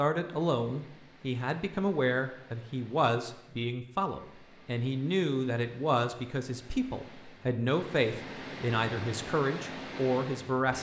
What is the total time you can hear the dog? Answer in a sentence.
You can't hear the dog here.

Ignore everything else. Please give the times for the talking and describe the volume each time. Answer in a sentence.
You can hear the talking from 0.0 to 10.7 s, at a steady volume.